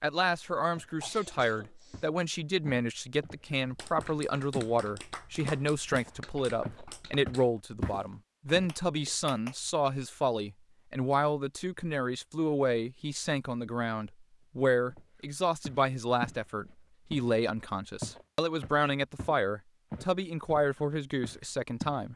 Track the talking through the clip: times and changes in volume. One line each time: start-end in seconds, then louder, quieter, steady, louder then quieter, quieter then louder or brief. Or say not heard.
0.0-22.1 steady.